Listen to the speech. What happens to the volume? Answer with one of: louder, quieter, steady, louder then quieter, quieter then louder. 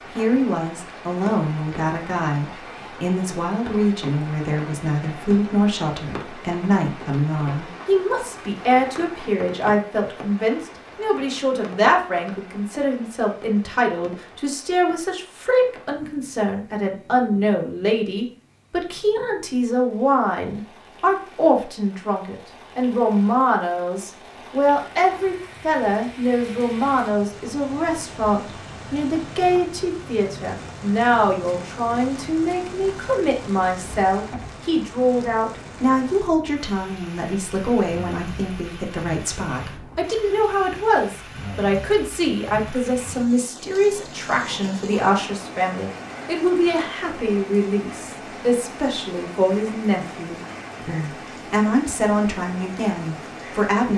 steady.